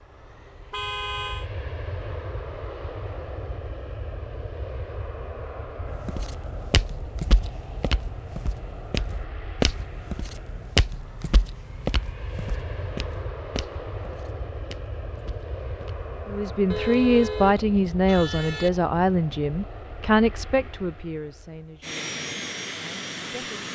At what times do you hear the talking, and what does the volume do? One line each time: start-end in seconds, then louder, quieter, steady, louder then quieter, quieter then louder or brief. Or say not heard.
16.2-23.6 quieter.